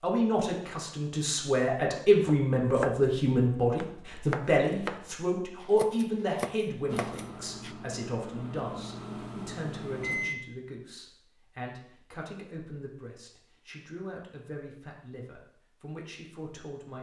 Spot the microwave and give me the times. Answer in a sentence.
You can hear the microwave from 6.8 to 10.3 s.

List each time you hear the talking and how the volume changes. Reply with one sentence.
You can hear the talking from 0.0 to 16.9 s, getting quieter.